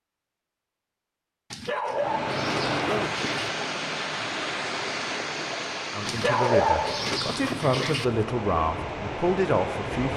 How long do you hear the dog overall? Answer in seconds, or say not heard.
4 s.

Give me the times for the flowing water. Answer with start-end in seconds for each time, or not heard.
1.9-10.1.